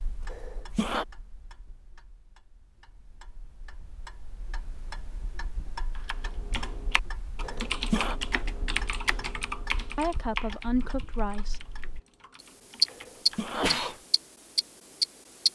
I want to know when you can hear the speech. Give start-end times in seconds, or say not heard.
9.9-11.6.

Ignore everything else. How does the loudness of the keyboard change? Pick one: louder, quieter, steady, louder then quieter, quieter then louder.
louder then quieter.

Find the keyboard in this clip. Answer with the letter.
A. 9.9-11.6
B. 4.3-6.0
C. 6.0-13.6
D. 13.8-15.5
C.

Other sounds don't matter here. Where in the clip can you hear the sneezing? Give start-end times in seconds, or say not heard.
0.3-1.1, 7.4-8.2, 12.9-14.0.